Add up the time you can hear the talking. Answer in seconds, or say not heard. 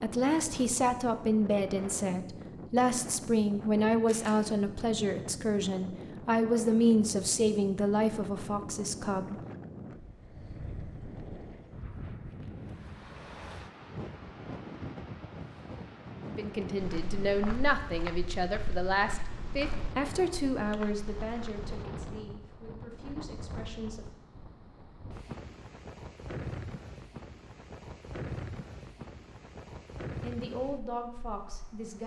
19 s.